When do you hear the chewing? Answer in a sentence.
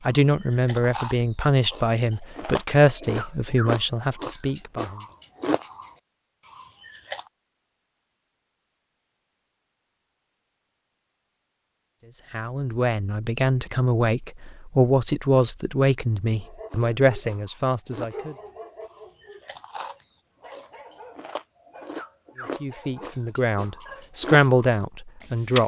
You can hear the chewing from 0.0 to 7.3 s and from 16.6 to 25.6 s.